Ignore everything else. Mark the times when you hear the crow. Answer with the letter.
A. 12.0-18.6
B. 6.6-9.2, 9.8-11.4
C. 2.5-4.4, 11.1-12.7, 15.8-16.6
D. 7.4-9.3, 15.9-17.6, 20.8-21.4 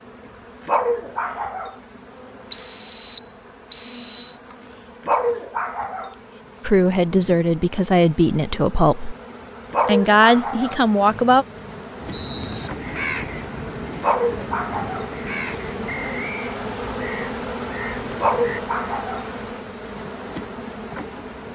A.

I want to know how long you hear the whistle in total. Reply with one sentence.
You can hear the whistle for 4 seconds altogether.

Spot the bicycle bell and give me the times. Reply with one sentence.
The bicycle bell can't be heard in this clip.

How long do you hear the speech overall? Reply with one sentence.
The speech can be heard for 4 seconds in total.